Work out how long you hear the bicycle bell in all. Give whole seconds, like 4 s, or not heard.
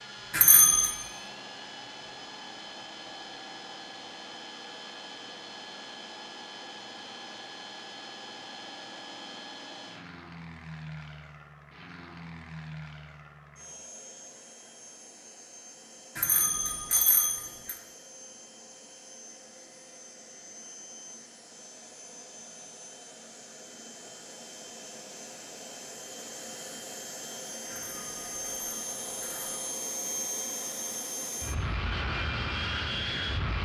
4 s.